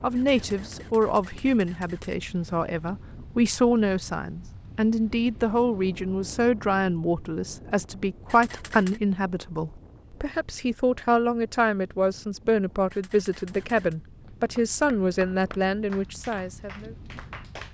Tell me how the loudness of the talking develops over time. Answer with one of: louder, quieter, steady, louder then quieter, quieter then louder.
steady.